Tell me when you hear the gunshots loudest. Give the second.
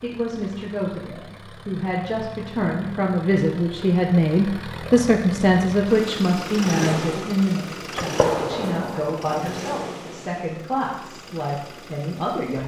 8 s.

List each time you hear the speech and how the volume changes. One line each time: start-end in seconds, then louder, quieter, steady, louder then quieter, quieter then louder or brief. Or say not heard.
0.0-12.6 louder then quieter.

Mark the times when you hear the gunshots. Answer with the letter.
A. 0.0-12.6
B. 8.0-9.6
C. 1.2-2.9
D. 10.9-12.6
B.